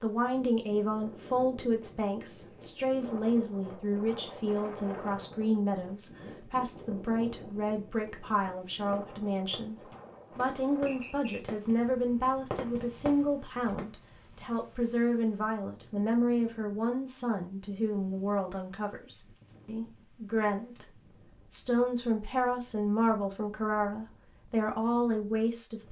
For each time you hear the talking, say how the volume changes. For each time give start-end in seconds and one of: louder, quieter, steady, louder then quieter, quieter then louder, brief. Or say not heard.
0.0-25.8 steady.